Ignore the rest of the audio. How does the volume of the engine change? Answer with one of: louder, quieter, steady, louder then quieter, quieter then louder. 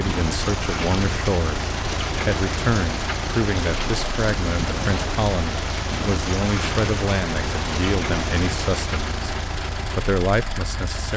steady.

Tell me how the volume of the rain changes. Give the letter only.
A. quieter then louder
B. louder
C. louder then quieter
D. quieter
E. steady
E.